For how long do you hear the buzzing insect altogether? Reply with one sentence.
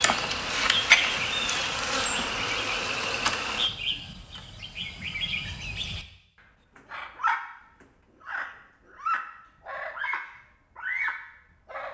You can hear the buzzing insect for 4 seconds altogether.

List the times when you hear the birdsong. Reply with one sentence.
The birdsong can be heard from 0.0 to 6.0 s and from 6.8 to 11.8 s.